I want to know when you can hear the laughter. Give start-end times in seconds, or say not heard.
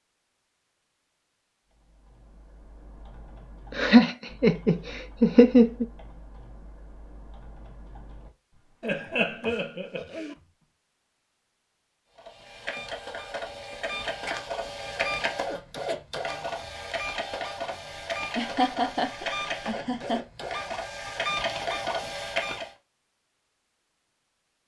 3.7-5.8, 8.8-10.3, 18.4-20.2.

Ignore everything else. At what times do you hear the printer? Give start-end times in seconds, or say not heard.
12.2-22.7.